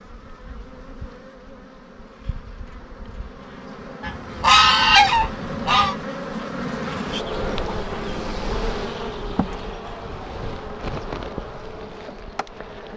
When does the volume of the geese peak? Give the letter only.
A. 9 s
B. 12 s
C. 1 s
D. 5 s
D.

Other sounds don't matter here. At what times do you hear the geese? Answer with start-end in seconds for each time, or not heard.
4.0-6.0.